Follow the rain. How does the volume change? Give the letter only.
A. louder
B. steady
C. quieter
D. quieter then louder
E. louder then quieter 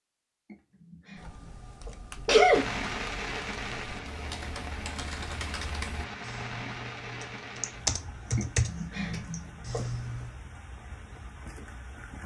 C.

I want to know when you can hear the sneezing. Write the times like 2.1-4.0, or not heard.
0.5-2.6, 8.3-10.0.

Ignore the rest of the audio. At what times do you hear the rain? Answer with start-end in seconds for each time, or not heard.
2.5-12.2.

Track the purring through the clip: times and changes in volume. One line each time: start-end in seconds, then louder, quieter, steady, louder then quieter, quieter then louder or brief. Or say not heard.
not heard.